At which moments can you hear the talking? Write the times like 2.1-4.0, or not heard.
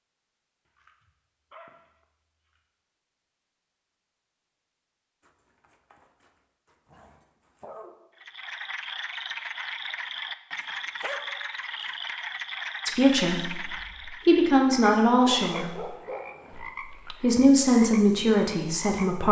12.8-15.8, 16.8-19.2.